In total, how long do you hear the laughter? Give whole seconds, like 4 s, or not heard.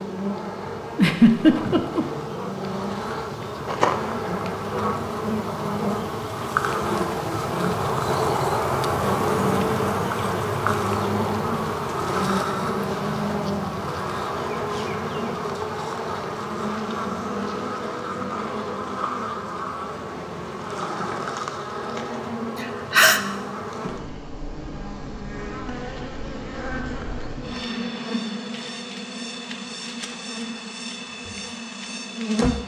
2 s.